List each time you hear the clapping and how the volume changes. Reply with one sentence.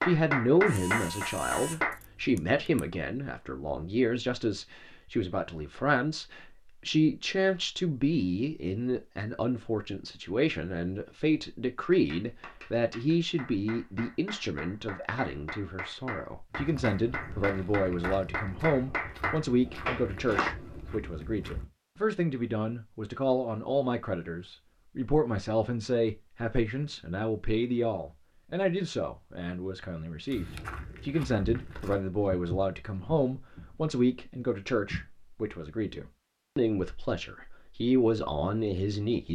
The clapping can be heard briefly from 0.0 to 1.9 s; and from 11.8 to 20.5 s, getting louder.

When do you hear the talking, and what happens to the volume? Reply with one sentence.
You can hear the talking from 0.0 to 39.2 s, at a steady volume.